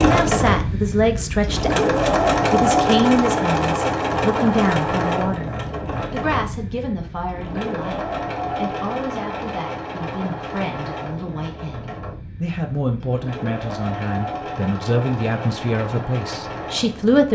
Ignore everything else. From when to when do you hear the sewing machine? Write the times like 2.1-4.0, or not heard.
0.0-17.3.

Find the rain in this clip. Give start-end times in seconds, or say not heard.
not heard.